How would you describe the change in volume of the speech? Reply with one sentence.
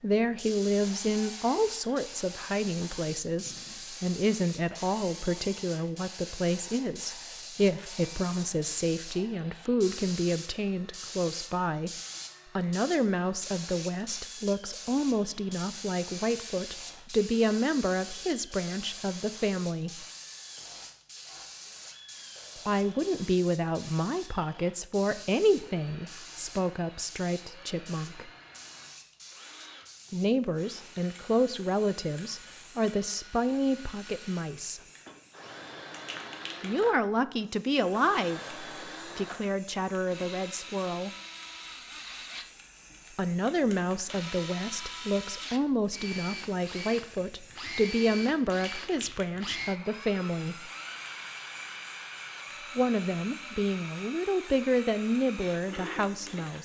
The volume of the speech stays about the same.